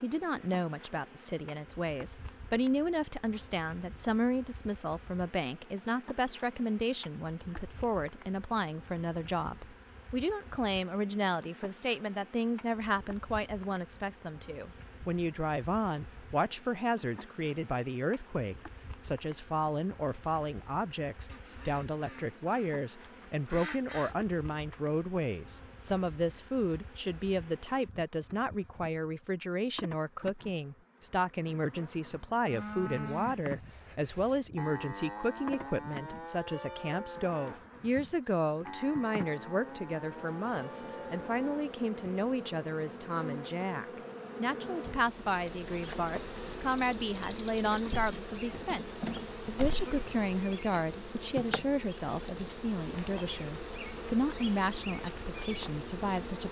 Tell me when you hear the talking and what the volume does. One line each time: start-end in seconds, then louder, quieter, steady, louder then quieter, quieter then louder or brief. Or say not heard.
0.0-56.4 steady.